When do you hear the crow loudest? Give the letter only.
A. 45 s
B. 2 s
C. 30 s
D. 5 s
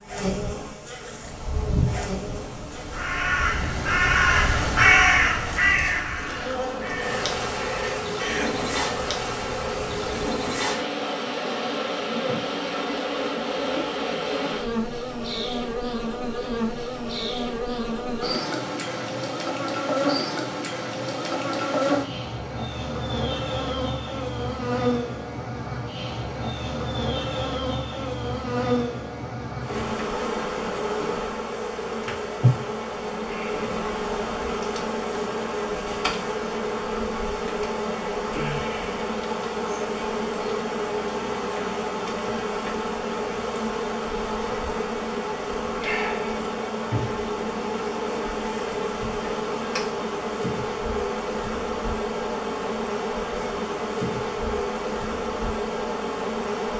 D.